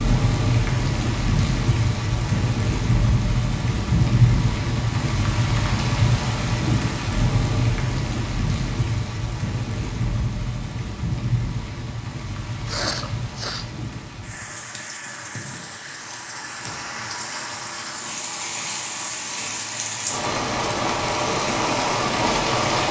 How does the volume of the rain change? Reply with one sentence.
The volume of the rain goes down, then up.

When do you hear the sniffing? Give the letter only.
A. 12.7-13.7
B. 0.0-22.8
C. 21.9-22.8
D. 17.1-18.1
A.